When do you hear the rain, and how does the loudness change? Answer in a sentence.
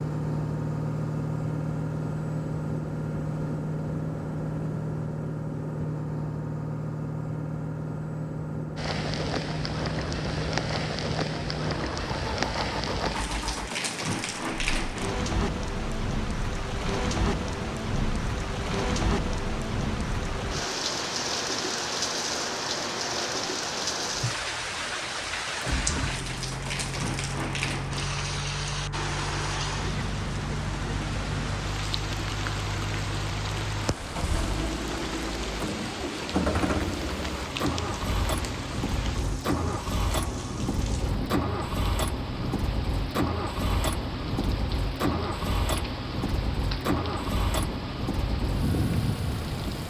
The rain can be heard from 8.8 to 49.8 s, getting quieter.